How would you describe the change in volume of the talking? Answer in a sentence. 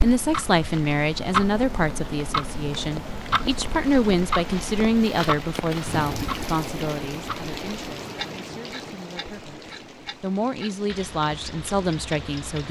The loudness of the talking goes down, then up.